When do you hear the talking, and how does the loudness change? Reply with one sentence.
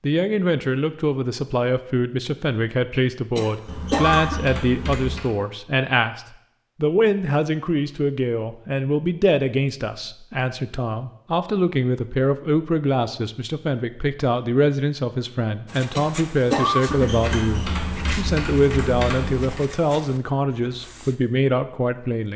The talking can be heard from 0.0 to 22.3 s, at a steady volume.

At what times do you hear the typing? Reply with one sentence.
You can hear the typing from 3.6 to 5.3 s and from 16.9 to 19.6 s.